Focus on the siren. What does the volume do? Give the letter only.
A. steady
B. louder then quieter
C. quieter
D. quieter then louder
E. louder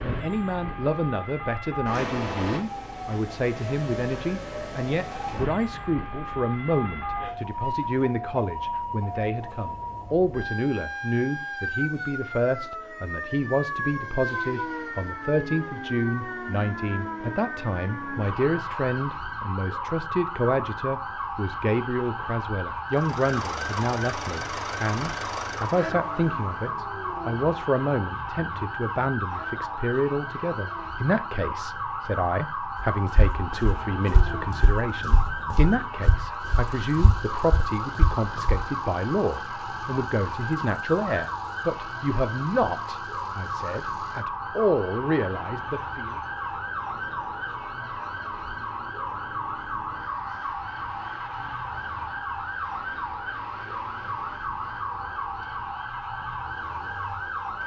A.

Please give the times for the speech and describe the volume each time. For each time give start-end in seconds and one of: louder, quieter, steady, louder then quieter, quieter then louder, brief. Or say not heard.
0.0-46.2 steady.